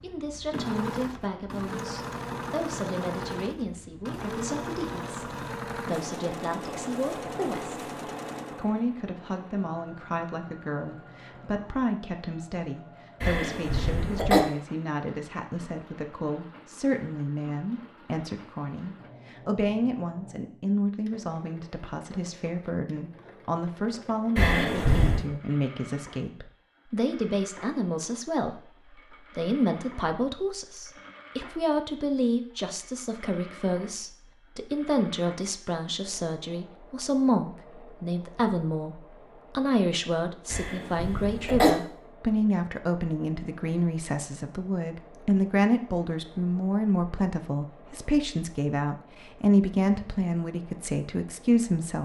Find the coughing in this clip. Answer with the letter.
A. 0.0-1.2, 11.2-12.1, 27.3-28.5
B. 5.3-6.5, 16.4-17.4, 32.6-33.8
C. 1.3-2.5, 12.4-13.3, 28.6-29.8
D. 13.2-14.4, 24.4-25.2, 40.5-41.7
D.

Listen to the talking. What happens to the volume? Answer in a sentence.
The loudness of the talking goes up.